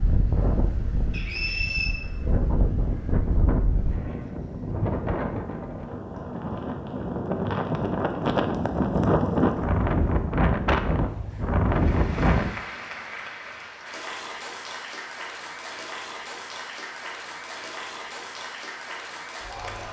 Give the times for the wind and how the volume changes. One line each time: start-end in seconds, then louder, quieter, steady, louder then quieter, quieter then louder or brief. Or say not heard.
0.0-12.5 louder.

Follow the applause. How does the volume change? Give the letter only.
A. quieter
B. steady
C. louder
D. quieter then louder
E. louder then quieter
B.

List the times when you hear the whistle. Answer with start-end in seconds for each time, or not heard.
1.1-1.9.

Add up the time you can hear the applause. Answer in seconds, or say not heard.
8 s.